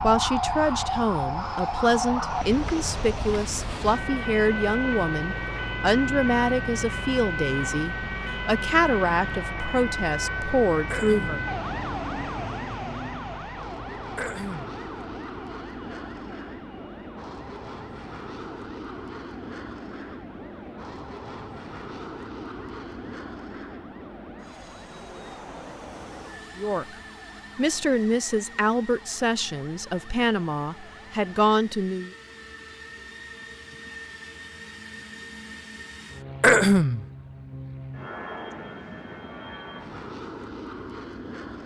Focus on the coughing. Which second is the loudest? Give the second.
37 s.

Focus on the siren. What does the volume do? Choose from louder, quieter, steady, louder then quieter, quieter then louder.
quieter.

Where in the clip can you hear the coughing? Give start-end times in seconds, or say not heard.
10.9-11.4, 14.2-14.8, 36.4-37.0.